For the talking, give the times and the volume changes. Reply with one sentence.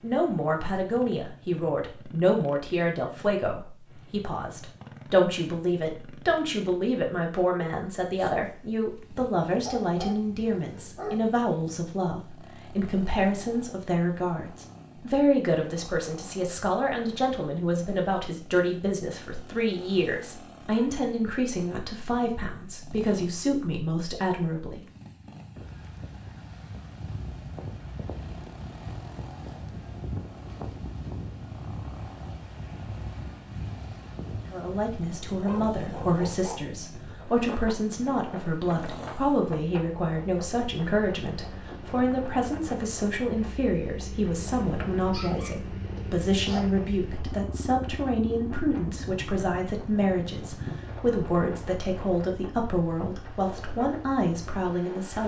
The talking can be heard from 0.0 to 24.9 s, at a steady volume; and from 34.5 to 55.2 s, at a steady volume.